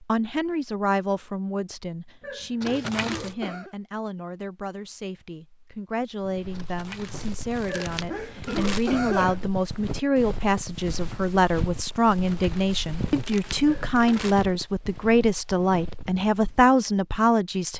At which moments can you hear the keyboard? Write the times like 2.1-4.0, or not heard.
not heard.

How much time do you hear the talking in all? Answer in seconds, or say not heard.
18 s.